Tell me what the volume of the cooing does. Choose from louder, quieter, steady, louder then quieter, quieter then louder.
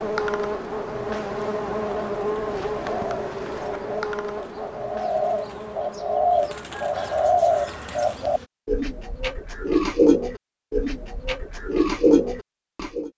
louder.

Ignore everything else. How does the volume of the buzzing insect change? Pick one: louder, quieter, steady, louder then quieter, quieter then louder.
quieter.